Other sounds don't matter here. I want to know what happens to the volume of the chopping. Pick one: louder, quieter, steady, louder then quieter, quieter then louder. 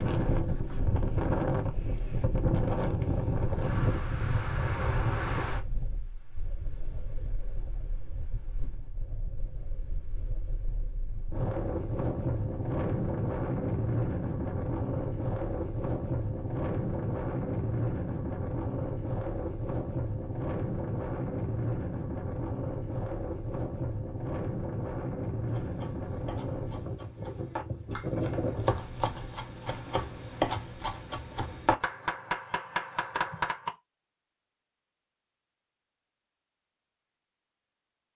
louder.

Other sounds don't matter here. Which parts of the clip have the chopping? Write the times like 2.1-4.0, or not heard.
25.4-33.7.